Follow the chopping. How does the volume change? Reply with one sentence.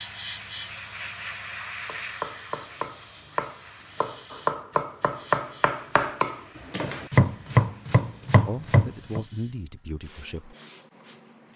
The volume of the chopping goes up.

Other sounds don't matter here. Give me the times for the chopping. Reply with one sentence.
You can hear the chopping from 1.9 to 9.2 s.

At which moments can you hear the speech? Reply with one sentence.
The speech can be heard from 8.4 to 10.6 s.